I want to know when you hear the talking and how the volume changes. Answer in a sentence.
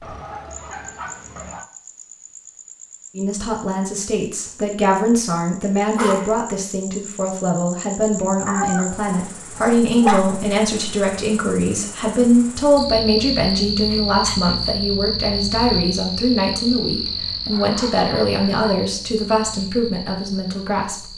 The talking can be heard from 3.1 to 21.1 s, at a steady volume.